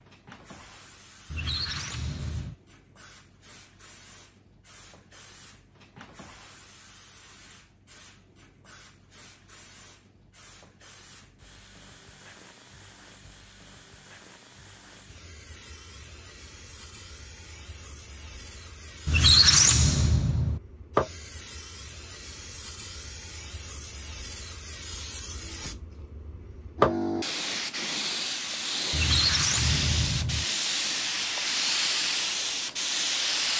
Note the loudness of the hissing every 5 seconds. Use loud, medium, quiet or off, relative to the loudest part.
quiet, quiet, quiet, quiet, medium, loud, loud.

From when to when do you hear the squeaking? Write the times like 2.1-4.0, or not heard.
1.3-2.5, 19.1-20.6, 28.9-30.4.